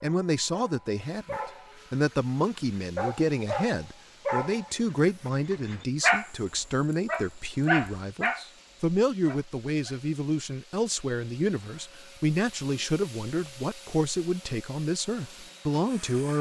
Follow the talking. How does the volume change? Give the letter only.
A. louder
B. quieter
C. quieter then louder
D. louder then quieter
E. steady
E.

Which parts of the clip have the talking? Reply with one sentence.
You can hear the talking from 0.0 to 16.3 s.